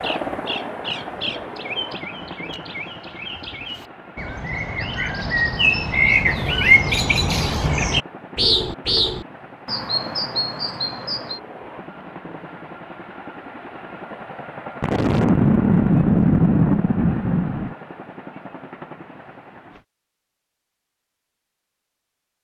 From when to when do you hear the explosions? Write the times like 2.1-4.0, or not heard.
14.8-17.8.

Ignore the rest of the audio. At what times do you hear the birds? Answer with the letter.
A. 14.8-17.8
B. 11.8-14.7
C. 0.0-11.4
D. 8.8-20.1
C.